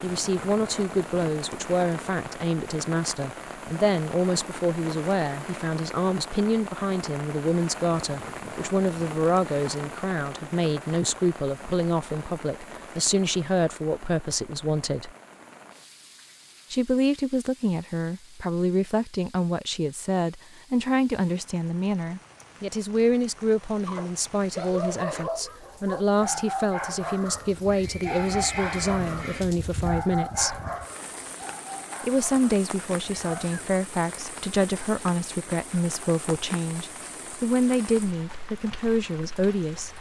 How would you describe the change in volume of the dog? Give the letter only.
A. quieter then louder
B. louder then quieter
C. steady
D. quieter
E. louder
D.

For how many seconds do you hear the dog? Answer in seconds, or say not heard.
10 s.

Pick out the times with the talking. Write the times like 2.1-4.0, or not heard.
0.0-15.1, 16.7-30.6, 32.0-39.9.